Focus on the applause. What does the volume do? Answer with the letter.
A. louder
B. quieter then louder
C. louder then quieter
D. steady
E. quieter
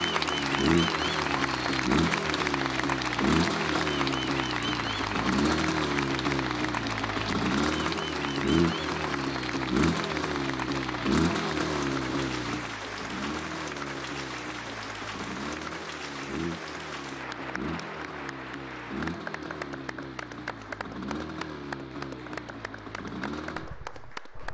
E.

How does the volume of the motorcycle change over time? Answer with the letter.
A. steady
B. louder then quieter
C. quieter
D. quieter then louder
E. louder
C.